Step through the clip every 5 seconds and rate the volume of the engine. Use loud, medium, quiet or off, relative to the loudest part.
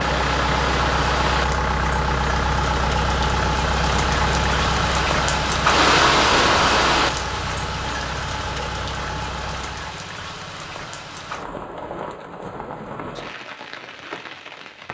loud, medium, off.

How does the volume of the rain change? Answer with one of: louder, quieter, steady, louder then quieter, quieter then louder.
louder then quieter.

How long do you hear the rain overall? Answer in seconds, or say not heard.
15 s.